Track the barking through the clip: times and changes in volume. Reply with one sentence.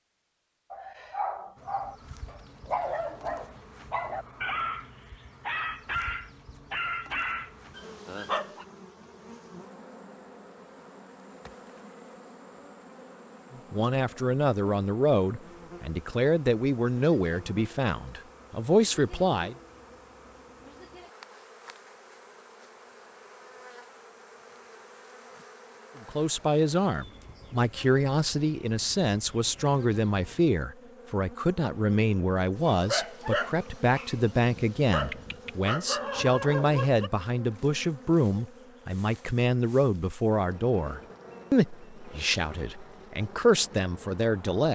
You can hear the barking from 0.7 to 8.7 s, at a steady volume; and from 32.6 to 37.1 s, getting quieter then louder.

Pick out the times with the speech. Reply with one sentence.
You can hear the speech from 13.5 to 19.6 s and from 26.1 to 44.7 s.